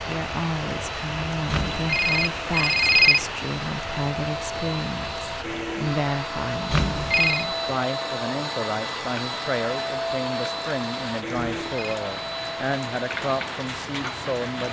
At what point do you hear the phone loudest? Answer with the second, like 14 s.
3 s.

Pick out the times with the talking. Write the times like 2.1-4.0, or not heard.
0.0-14.6.